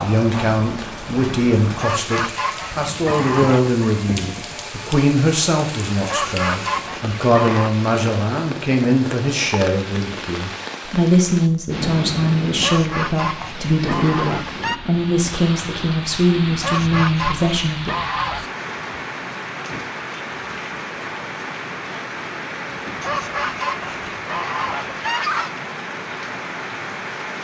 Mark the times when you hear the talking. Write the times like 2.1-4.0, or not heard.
0.0-17.9.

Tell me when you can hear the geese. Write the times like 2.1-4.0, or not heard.
1.8-3.9, 6.0-7.8, 12.6-14.8, 16.6-18.4, 23.0-25.6.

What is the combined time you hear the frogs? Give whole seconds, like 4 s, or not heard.
not heard.